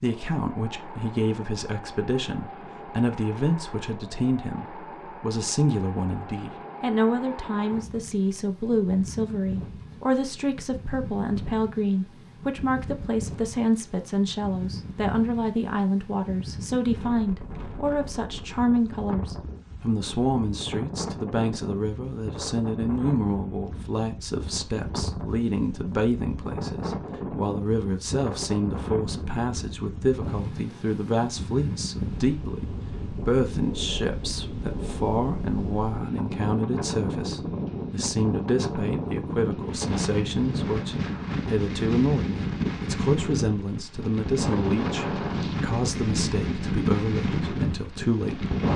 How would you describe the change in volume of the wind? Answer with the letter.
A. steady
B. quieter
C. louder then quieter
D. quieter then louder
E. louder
E.